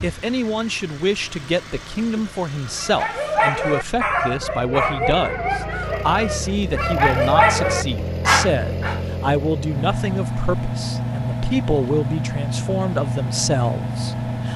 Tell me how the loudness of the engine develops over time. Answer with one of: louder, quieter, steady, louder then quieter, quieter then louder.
louder.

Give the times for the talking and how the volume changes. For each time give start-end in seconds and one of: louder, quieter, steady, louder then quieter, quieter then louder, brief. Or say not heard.
0.0-14.5 steady.